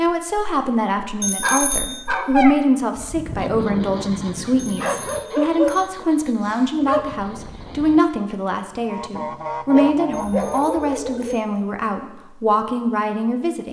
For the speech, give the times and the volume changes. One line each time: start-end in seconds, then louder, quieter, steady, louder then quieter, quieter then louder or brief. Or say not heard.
0.0-13.6 steady.